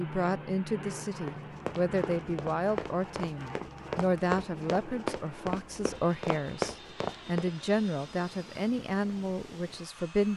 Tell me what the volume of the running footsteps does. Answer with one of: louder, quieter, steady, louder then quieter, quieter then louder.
louder.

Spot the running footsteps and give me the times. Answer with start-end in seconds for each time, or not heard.
1.2-7.5.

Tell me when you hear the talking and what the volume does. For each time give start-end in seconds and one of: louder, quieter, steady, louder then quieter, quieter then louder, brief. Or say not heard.
0.0-10.3 steady.